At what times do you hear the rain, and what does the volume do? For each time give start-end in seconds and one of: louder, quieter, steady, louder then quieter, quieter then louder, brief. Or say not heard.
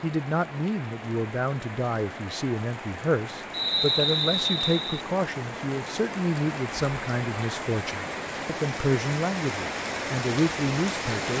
0.0-11.3 louder.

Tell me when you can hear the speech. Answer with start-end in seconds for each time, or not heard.
0.0-11.3.